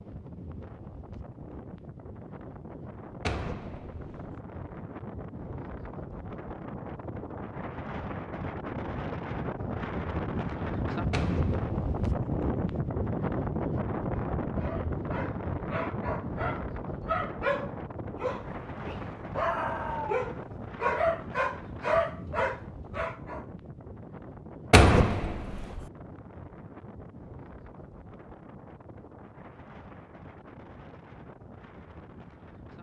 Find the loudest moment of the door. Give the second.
25 s.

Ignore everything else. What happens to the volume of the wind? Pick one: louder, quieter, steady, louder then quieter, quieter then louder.
louder then quieter.